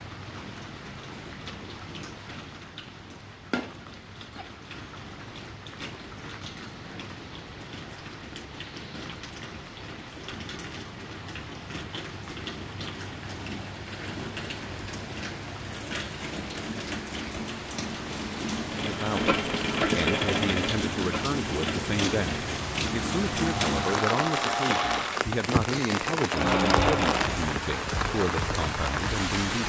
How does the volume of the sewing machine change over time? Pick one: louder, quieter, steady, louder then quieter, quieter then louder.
quieter then louder.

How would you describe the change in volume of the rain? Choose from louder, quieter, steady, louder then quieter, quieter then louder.
louder.